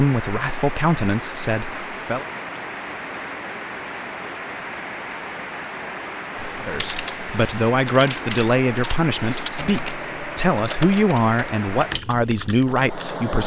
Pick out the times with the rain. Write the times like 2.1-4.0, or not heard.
0.0-13.4.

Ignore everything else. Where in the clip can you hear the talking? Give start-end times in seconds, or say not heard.
0.0-2.2, 6.6-13.4.